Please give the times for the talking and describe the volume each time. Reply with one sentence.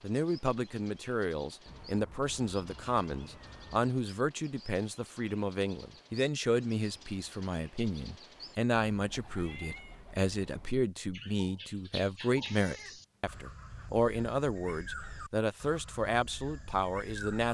You can hear the talking from 0.0 to 17.4 s, at a steady volume.